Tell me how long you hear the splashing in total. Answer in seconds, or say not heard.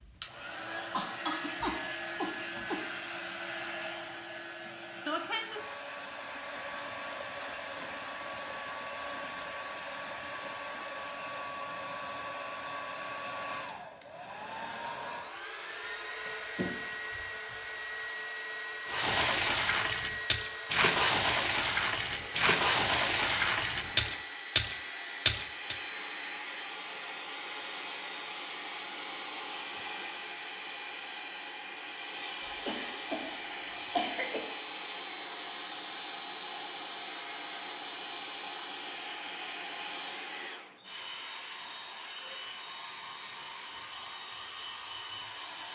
7 s.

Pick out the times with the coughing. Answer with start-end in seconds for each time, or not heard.
0.9-2.8, 16.2-17.6, 32.6-33.4, 34.0-34.5.